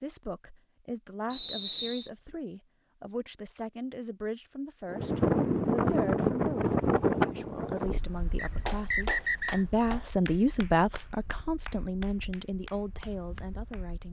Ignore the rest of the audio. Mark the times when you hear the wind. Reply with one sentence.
You can hear the wind from 4.9 to 14.0 s.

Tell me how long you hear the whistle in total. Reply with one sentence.
You can hear the whistle for 2 seconds altogether.